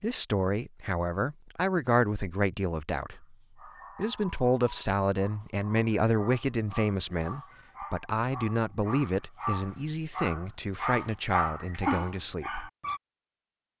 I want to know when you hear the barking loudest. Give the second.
12 s.